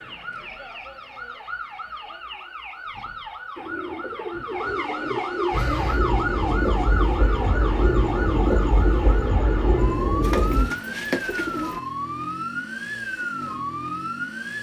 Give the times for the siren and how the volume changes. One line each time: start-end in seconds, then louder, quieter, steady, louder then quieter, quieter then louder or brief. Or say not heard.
0.0-14.5 louder.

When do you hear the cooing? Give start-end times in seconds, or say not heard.
3.5-5.6, 10.2-11.8.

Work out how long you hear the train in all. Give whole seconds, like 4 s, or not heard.
5 s.